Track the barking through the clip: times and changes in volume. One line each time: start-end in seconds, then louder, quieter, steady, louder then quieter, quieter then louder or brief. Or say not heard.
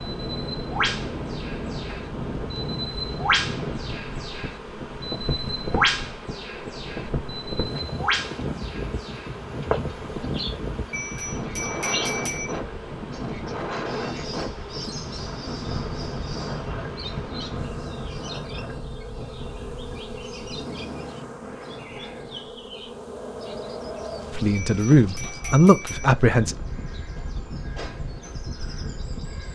not heard.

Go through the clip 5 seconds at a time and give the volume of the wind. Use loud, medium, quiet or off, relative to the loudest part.
loud, loud, loud, loud, medium, medium.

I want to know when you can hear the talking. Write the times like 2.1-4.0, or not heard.
24.3-26.6.